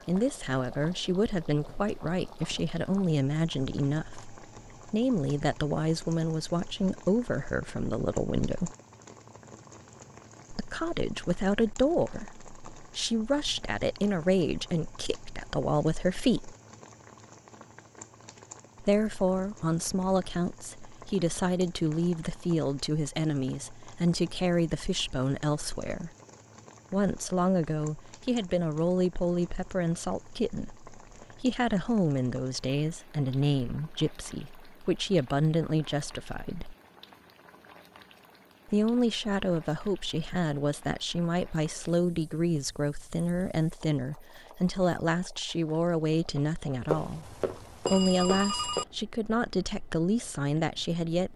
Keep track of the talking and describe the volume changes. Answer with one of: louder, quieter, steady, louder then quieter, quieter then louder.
steady.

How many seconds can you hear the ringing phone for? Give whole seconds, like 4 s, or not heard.
2 s.